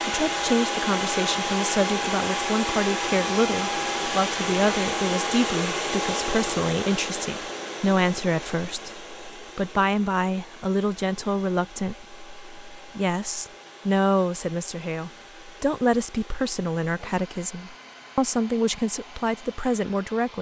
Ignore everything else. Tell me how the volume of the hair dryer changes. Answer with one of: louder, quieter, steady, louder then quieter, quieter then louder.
quieter.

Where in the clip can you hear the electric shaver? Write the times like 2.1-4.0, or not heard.
not heard.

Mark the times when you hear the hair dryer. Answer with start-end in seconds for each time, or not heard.
0.0-20.3.